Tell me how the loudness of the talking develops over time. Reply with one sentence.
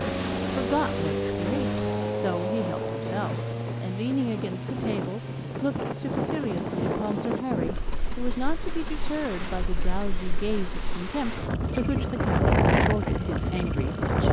The loudness of the talking stays about the same.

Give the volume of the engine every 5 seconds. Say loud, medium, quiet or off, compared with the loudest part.
loud, medium, quiet.